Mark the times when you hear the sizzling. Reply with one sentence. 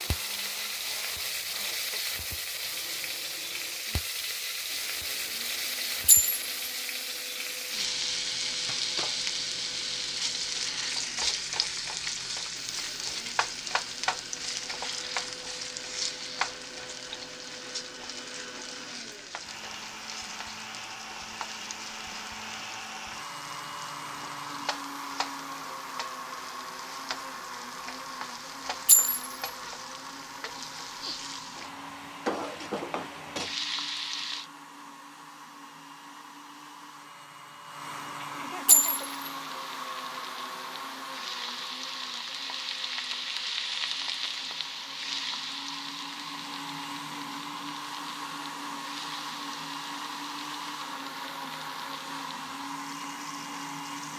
The sizzling can be heard from 0.0 to 34.5 s and from 38.8 to 54.1 s.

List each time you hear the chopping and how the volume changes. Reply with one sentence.
The chopping can't be heard in this clip.